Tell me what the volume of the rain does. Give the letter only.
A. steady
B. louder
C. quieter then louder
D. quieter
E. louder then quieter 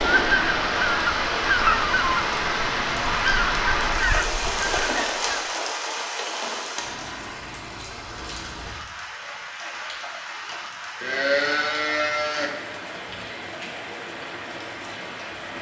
D.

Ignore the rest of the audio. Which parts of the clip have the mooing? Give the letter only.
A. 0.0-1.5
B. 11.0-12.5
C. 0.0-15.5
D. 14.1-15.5
B.